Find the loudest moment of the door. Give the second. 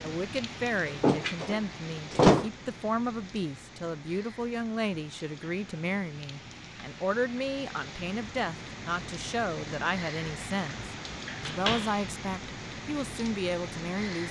2 s.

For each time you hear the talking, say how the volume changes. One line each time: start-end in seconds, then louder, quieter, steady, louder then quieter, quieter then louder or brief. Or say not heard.
0.0-14.2 steady.